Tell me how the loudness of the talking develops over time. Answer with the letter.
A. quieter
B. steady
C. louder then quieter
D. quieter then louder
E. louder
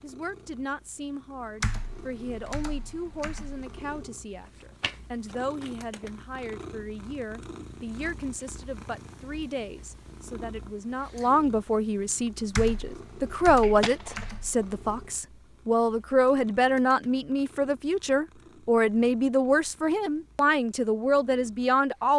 E.